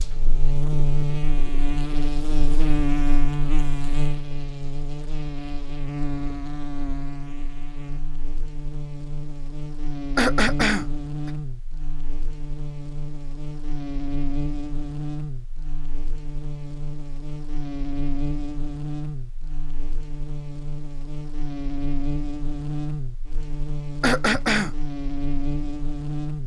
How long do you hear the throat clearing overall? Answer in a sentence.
The throat clearing can be heard for 2 seconds in total.